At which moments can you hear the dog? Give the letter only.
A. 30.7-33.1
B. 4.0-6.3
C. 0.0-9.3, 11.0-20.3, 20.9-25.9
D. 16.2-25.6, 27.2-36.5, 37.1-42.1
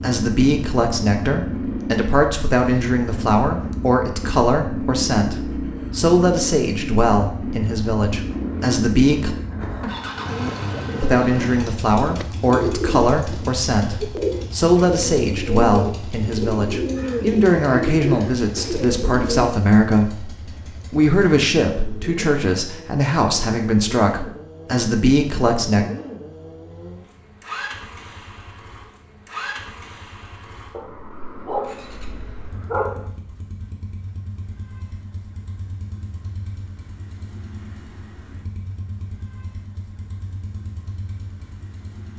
A.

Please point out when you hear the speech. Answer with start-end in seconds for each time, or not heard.
0.0-9.3, 11.0-20.3, 20.9-25.9.